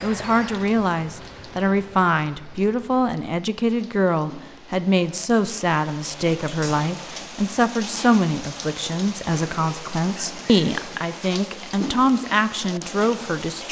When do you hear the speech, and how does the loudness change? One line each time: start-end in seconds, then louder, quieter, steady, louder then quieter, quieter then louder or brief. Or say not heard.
0.0-13.6 steady.